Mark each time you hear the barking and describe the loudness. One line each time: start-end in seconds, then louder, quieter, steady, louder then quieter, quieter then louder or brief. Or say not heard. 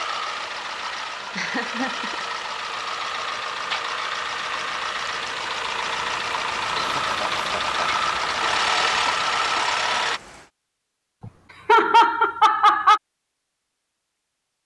not heard.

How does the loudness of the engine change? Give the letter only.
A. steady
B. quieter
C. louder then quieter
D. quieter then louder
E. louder
E.